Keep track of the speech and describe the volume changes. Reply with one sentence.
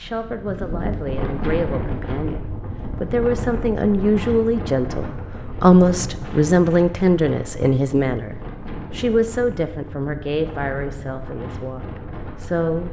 The loudness of the speech goes up, then down.